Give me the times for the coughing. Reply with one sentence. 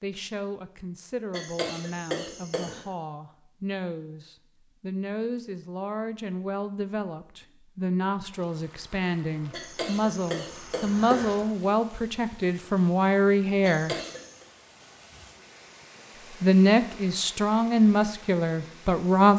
You can hear the coughing from 1.3 to 2.8 s, from 9.5 to 11.3 s and from 13.6 to 14.4 s.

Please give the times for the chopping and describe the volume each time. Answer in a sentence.
You can't hear the chopping here.